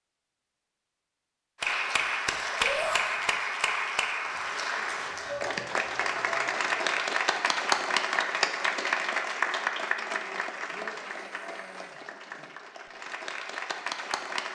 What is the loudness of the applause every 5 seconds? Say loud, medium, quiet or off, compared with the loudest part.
loud, loud, medium.